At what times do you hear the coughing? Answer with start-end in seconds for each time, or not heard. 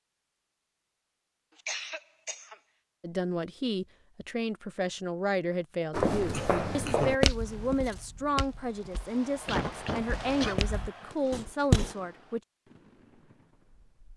1.6-2.5, 6.3-7.2, 9.4-10.6.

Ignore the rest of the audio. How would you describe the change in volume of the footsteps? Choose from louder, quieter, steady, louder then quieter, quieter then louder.
quieter then louder.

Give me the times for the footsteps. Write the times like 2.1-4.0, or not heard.
5.9-11.9.